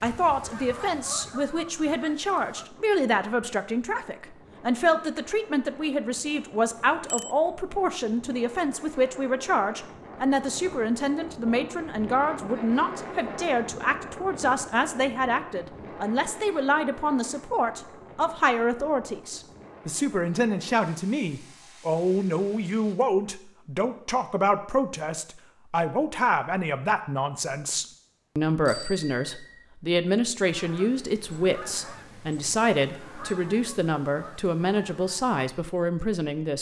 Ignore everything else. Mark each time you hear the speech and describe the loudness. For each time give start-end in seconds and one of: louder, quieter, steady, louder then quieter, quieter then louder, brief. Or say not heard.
0.0-36.5 steady.